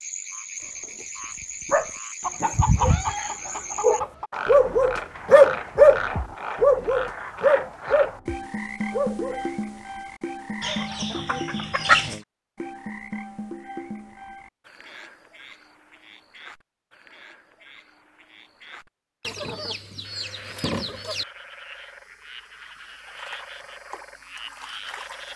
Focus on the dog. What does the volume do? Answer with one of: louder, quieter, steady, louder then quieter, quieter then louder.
louder then quieter.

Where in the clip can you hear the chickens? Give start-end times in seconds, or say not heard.
2.2-4.3, 10.6-12.2, 19.2-21.2.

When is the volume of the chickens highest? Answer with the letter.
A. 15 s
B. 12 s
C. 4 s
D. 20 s
B.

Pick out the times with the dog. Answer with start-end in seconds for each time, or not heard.
1.0-9.4.